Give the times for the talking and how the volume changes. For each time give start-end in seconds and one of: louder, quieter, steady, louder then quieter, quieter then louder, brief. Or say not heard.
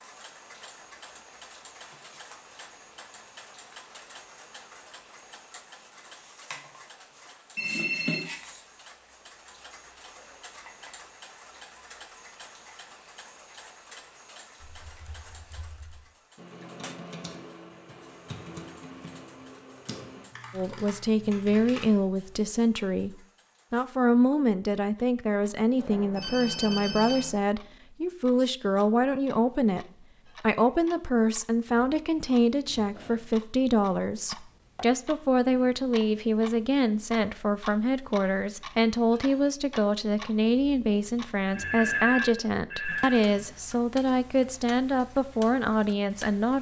20.6-46.5 steady.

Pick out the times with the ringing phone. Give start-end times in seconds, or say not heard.
7.5-8.2, 25.8-27.4, 41.5-43.5.